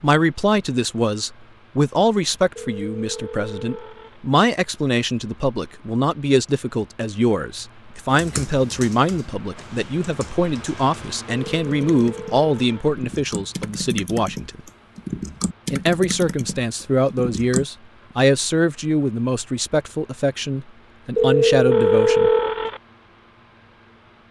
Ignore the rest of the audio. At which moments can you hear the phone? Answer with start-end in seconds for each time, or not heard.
2.5-4.2, 11.2-12.9, 21.1-22.8.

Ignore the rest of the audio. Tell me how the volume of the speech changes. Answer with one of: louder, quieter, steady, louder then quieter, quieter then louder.
steady.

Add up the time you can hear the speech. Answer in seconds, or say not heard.
21 s.